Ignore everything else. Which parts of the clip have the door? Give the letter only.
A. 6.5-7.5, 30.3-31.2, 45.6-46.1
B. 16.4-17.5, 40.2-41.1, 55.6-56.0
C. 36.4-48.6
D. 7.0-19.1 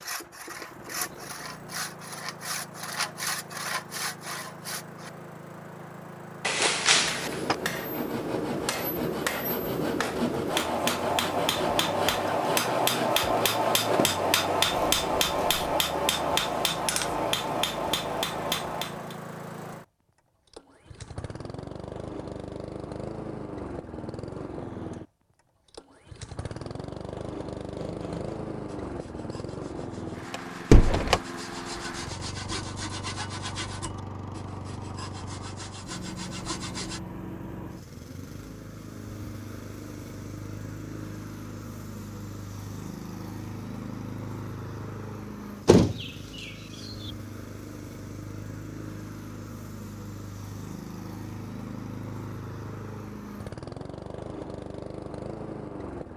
A.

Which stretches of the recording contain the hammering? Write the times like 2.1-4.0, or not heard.
7.0-19.1.